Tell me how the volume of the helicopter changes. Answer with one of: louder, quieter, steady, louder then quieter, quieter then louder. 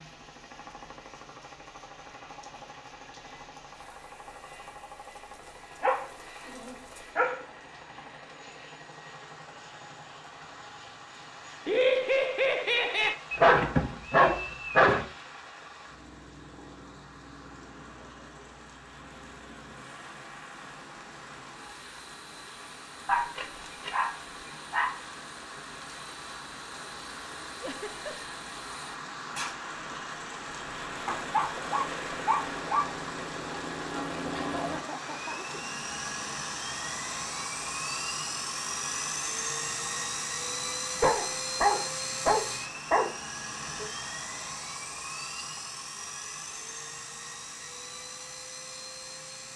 louder.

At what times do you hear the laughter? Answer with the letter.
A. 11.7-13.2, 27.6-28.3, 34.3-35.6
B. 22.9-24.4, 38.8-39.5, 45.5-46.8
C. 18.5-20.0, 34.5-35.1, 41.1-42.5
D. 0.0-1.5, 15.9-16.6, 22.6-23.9
A.